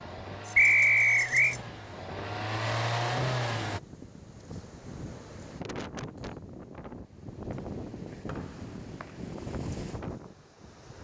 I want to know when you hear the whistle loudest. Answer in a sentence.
The loudest moment of the whistle is at 1 second.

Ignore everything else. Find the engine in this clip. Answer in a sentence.
You can hear the engine from 0.0 to 3.8 s.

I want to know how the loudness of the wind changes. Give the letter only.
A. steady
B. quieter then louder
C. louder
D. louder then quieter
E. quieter
C.